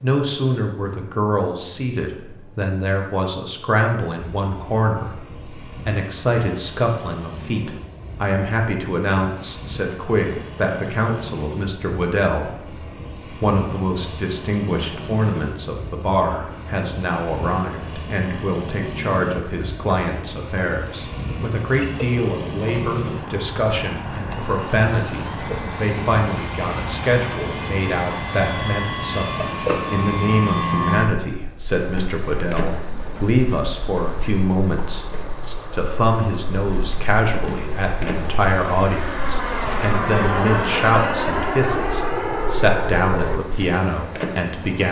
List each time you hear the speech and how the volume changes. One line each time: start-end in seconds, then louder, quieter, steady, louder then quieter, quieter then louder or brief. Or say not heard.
0.0-44.8 steady.